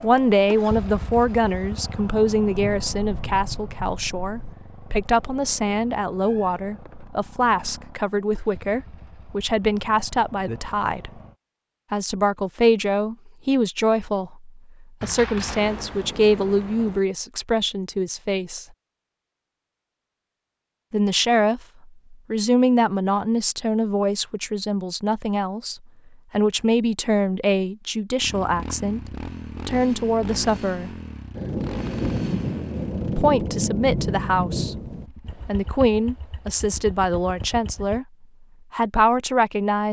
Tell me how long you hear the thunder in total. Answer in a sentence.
The thunder can be heard for 8 seconds in total.